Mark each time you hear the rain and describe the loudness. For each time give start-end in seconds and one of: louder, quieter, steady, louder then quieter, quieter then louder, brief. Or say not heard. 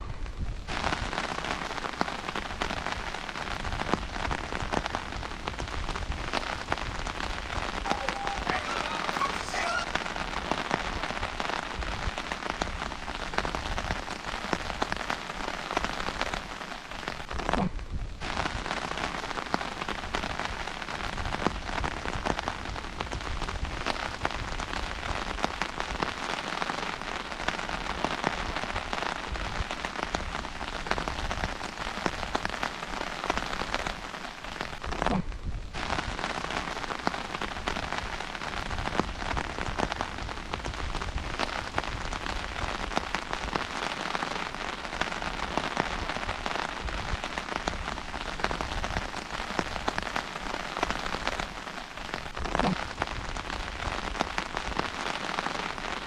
0.0-56.0 steady.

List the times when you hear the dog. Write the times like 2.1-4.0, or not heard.
7.8-9.8.